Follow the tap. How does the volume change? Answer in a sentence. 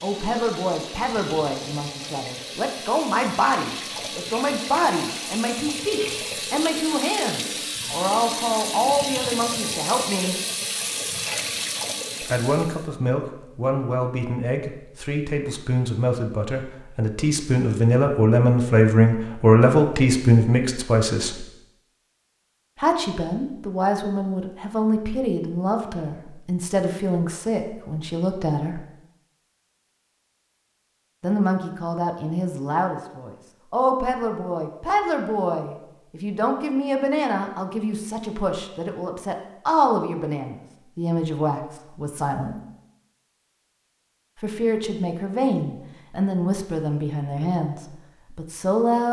The volume of the tap goes up.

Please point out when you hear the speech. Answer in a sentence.
You can hear the speech from 0.0 to 10.3 s, from 12.2 to 21.4 s, from 22.8 to 28.8 s, from 31.2 to 42.5 s and from 44.4 to 49.0 s.